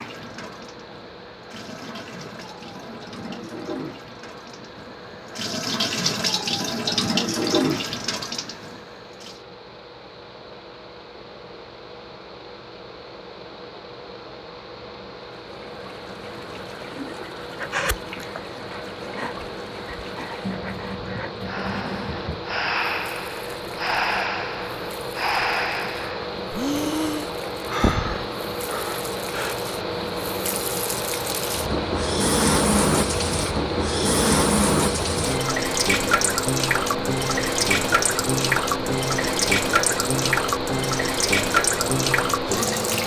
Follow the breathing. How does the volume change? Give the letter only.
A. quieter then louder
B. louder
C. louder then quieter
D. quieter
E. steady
B.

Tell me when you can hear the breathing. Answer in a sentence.
The breathing can be heard from 17.6 to 29.6 s.